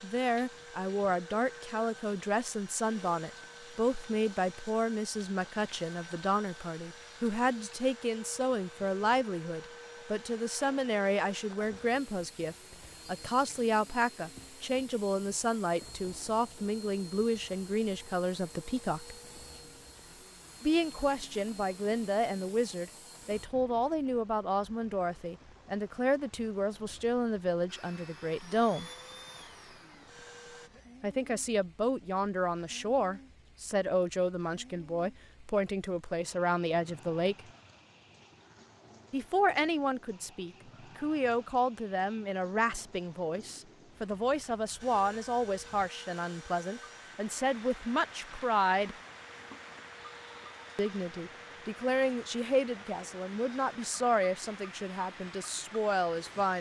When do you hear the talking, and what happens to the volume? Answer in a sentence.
You can hear the talking from 0.0 to 19.1 s, at a steady volume; from 20.6 to 28.9 s, at a steady volume; from 31.0 to 37.4 s, at a steady volume; from 39.1 to 49.0 s, at a steady volume; and from 50.8 to 56.5 s, at a steady volume.